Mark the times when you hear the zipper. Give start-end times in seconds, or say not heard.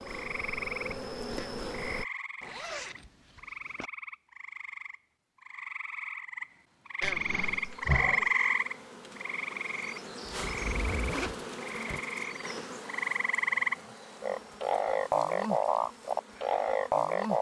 2.4-3.9, 10.2-12.0.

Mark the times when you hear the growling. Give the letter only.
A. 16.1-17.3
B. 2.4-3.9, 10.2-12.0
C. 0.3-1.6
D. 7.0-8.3
D.